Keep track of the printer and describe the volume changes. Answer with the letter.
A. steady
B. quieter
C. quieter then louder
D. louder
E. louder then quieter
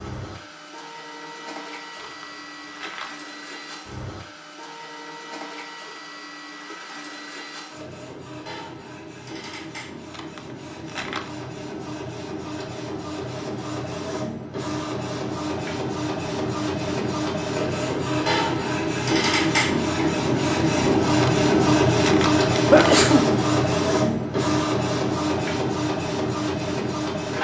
D.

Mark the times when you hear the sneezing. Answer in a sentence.
You can hear the sneezing from 22.7 to 23.3 s.